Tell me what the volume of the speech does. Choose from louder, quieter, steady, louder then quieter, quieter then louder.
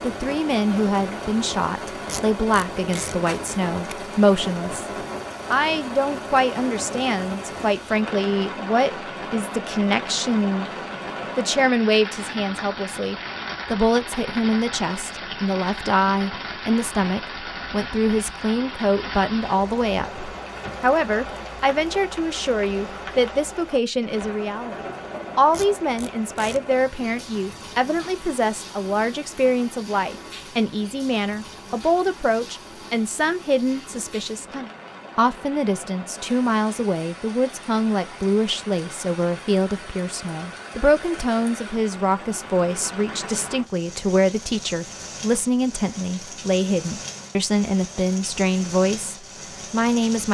steady.